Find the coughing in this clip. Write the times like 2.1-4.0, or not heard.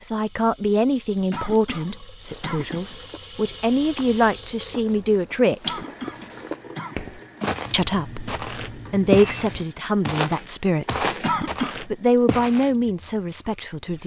1.3-3.0, 5.6-7.0, 11.2-11.8.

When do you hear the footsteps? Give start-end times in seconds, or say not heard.
2.2-12.7.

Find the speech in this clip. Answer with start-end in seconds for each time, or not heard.
0.0-5.8, 7.7-11.1, 11.8-14.0.